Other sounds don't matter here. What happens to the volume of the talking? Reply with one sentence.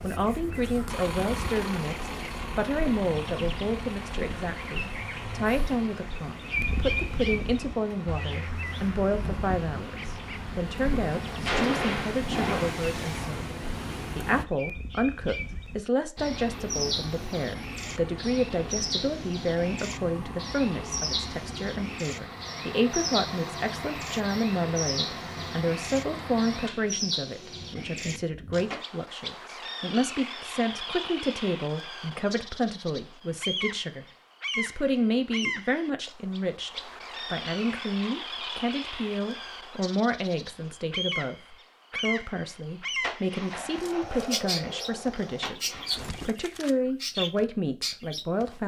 The loudness of the talking stays about the same.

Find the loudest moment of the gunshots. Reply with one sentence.
The loudest moment of the gunshots is at 12 seconds.